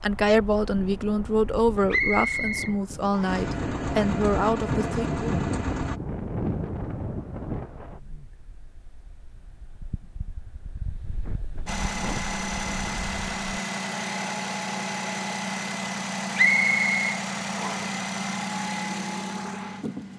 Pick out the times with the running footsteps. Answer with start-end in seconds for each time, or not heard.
not heard.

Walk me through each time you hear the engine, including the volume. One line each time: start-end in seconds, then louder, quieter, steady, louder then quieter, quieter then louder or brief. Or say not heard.
3.2-6.0 brief
11.7-20.1 steady.